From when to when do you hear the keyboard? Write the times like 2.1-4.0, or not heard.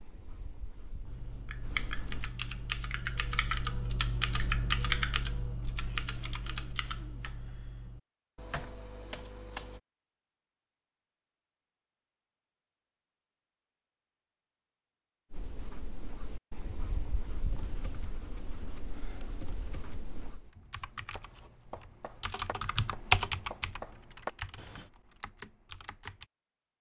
1.1-9.8, 17.5-26.2.